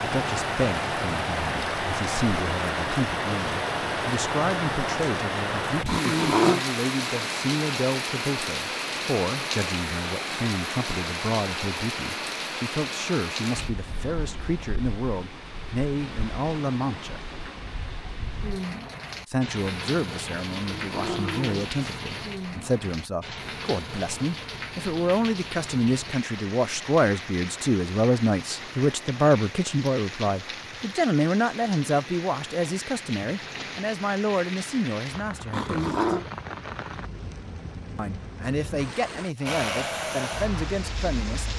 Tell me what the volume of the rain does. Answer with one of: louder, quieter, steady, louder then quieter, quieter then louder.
quieter.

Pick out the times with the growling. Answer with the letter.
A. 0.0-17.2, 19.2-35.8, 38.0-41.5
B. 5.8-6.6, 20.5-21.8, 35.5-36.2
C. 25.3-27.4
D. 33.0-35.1
B.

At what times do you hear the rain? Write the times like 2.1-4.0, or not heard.
0.0-41.5.